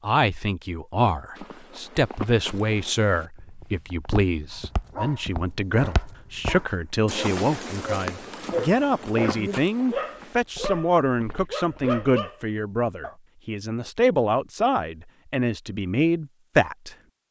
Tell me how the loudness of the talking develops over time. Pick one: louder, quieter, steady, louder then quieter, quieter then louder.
steady.